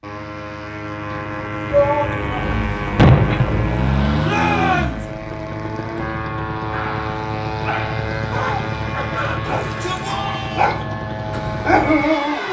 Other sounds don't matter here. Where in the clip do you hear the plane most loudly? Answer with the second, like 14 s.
4 s.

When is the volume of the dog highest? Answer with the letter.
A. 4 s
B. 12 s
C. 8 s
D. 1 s
B.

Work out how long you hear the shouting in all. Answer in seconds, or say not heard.
3 s.